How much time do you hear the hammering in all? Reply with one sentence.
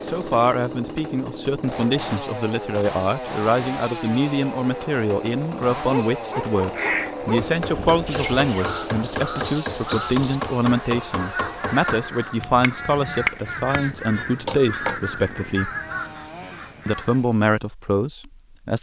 You can hear the hammering for 8 seconds altogether.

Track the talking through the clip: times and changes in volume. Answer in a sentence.
You can hear the talking from 0.0 to 15.7 s, at a steady volume; and briefly from 16.9 to 18.7 s.